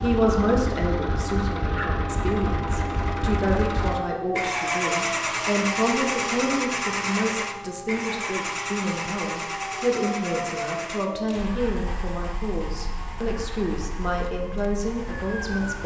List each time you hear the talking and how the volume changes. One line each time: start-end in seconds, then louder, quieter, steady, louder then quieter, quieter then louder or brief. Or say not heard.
0.0-15.8 steady.